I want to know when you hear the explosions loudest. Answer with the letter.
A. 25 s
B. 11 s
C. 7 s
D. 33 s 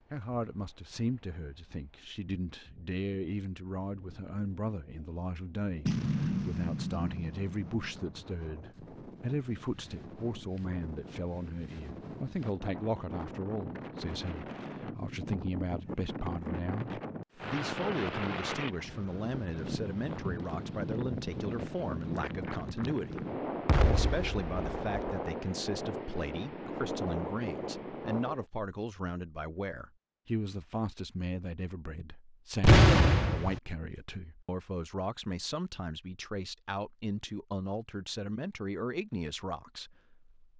D.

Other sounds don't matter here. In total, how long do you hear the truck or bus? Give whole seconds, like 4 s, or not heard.
not heard.